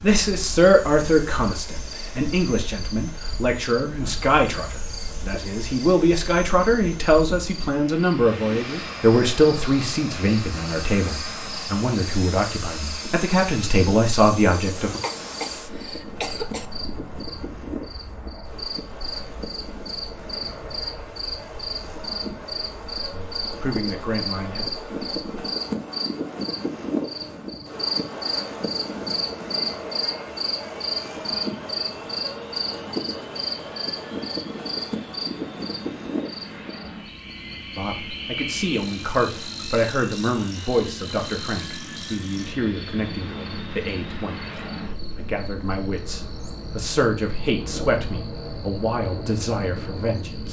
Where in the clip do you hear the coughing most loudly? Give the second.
16 s.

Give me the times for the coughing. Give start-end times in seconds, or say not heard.
15.0-16.7.